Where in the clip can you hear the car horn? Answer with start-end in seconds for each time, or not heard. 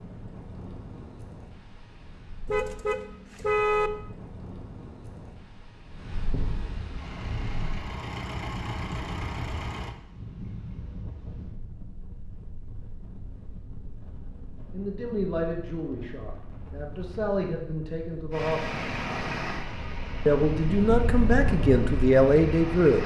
2.5-3.9.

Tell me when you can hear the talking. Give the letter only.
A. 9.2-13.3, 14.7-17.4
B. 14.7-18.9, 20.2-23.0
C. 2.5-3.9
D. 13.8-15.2
B.